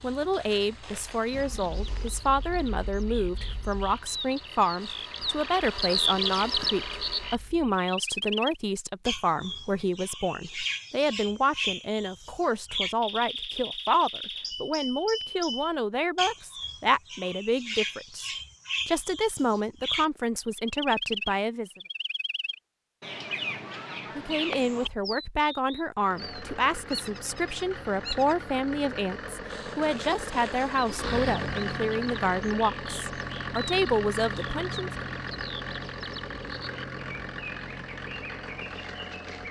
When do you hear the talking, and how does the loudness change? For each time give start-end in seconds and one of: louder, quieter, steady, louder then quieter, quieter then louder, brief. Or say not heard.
0.0-21.7 steady
24.1-34.9 steady.